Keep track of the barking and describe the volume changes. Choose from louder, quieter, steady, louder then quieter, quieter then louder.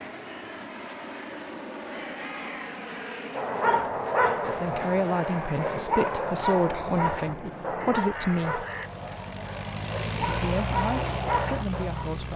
quieter then louder.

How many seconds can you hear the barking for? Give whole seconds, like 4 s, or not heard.
9 s.